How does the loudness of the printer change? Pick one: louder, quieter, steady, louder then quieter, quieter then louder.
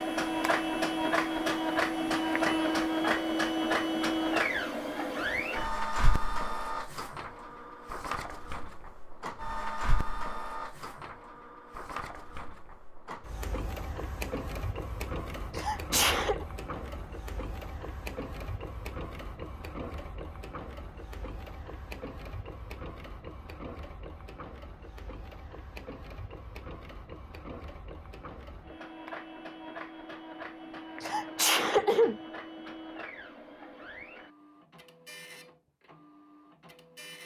quieter.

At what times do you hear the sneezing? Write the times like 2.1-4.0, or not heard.
15.6-16.4, 31.0-32.2.